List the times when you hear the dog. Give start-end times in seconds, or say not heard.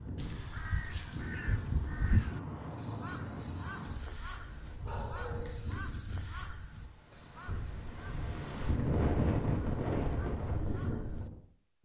4.0-5.8.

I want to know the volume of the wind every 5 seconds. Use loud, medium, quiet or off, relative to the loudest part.
medium, loud, loud.